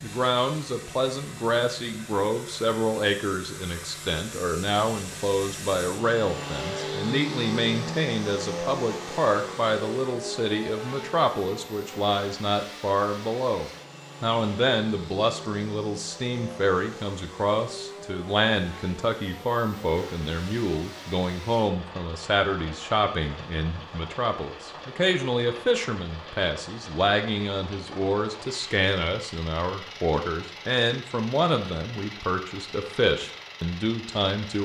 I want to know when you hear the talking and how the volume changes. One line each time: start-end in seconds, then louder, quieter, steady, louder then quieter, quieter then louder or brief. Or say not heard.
0.0-34.6 steady.